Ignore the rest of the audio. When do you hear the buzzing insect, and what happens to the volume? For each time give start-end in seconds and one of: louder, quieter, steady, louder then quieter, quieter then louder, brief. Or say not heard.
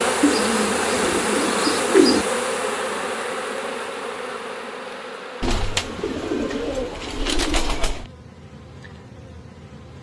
0.0-9.9 quieter.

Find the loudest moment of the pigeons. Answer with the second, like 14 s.
2 s.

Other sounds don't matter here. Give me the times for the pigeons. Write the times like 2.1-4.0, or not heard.
0.2-2.2, 5.4-8.1.